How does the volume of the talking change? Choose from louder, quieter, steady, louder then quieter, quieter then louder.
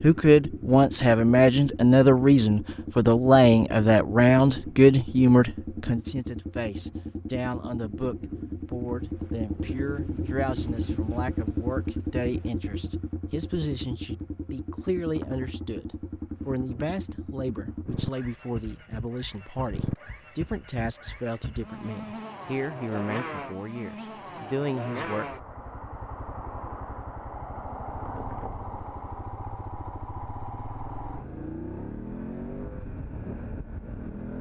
quieter.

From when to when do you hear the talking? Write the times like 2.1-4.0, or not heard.
0.0-25.4.